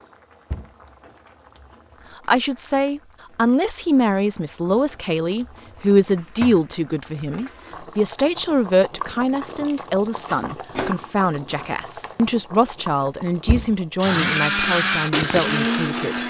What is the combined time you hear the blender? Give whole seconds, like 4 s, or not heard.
2 s.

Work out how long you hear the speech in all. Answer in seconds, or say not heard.
14 s.